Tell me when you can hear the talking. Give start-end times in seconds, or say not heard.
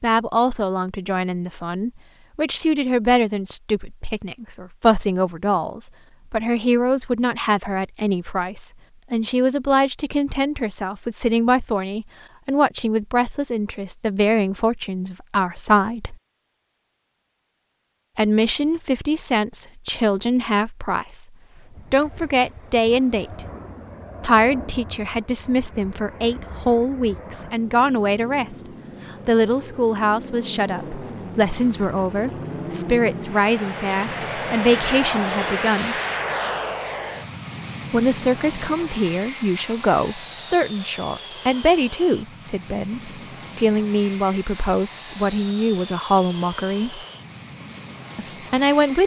0.0-16.1, 18.1-21.2, 21.9-23.4, 24.2-36.0, 37.9-47.0, 48.1-49.0.